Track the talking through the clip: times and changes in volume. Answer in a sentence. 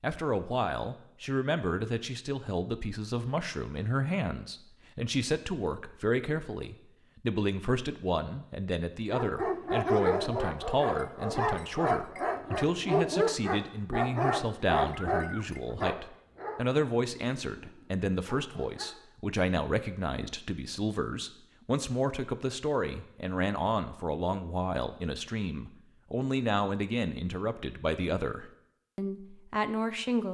You can hear the talking from 0.0 to 30.2 s, at a steady volume.